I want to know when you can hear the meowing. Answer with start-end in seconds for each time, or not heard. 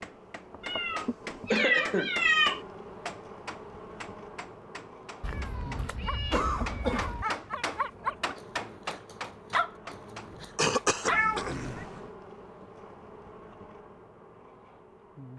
0.6-2.6, 5.2-7.2, 11.1-11.8.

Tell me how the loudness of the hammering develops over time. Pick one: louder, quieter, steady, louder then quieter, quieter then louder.
quieter then louder.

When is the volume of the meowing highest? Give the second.
2 s.